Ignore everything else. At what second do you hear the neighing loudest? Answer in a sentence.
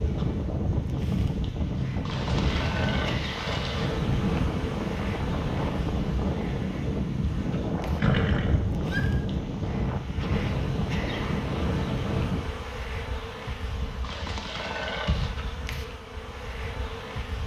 The loudest moment of the neighing is at 8 seconds.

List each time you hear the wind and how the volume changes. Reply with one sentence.
The wind can be heard from 0.0 to 12.4 s, at a steady volume.